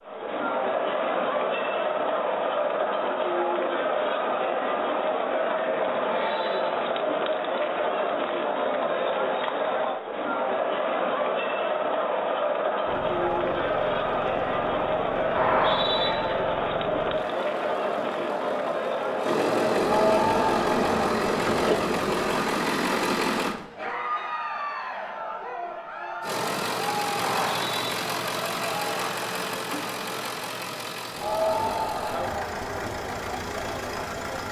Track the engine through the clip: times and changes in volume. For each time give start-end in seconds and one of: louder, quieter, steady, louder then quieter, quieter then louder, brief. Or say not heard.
12.8-23.6 louder
26.2-34.4 quieter.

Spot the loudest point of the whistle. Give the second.
16 s.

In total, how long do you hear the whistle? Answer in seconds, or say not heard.
2 s.